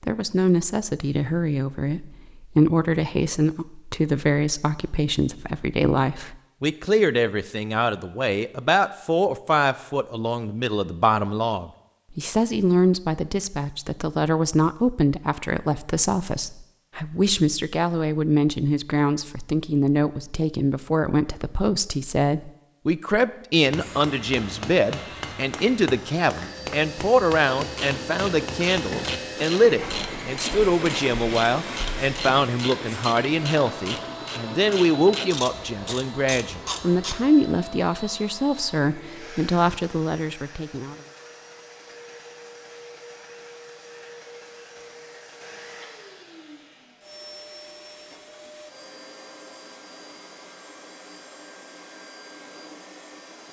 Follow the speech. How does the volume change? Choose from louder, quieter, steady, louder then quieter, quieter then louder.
steady.